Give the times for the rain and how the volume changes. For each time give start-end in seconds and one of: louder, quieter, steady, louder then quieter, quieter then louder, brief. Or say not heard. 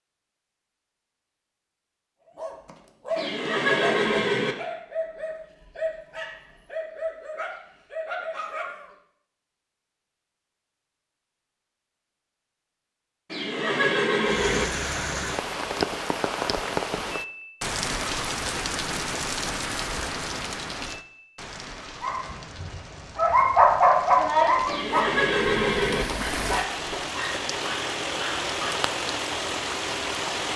14.2-30.5 quieter then louder.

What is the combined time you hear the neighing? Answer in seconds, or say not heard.
4 s.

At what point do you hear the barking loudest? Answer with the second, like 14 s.
24 s.